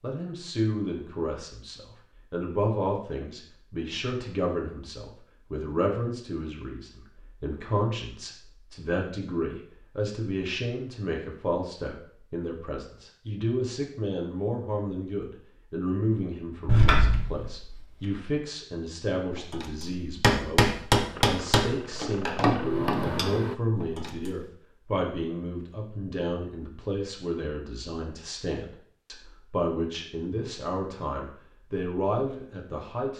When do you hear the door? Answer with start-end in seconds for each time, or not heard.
16.6-17.8.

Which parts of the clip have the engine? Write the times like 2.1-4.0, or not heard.
21.1-23.6.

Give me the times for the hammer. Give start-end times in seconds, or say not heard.
19.3-24.4.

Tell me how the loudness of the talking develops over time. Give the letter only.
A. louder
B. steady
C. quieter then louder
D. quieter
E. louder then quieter
B.